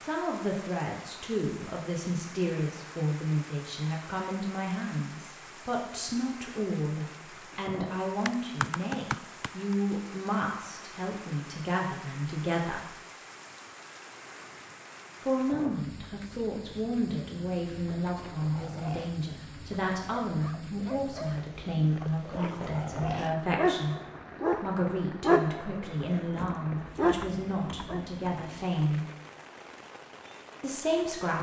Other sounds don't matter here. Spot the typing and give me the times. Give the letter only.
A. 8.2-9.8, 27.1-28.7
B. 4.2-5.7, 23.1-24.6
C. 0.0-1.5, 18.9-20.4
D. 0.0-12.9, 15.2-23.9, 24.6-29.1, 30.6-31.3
A.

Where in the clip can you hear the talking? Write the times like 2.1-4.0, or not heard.
0.0-12.9, 15.2-23.9, 24.6-29.1, 30.6-31.3.